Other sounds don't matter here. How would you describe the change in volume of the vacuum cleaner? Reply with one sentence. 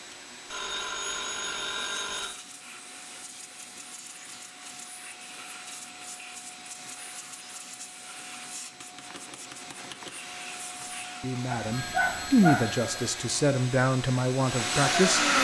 The loudness of the vacuum cleaner goes up.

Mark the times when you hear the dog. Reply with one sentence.
You can hear the dog from 11.5 to 12.8 s.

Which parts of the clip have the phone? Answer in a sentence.
You can hear the phone from 0.5 to 2.4 s and from 11.7 to 13.2 s.